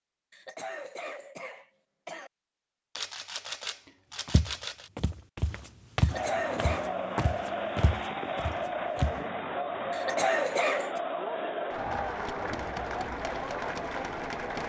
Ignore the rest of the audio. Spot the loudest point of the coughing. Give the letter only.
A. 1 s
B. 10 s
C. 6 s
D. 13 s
B.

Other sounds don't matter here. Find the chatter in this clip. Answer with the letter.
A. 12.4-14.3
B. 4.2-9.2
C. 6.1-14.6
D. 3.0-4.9
C.